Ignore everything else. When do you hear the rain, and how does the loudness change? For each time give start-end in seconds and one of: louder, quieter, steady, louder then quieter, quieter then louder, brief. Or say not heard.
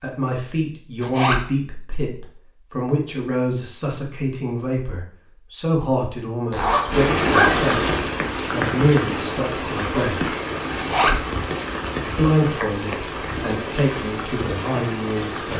6.8-15.5 quieter.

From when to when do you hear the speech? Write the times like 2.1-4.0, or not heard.
0.0-10.3, 12.2-15.5.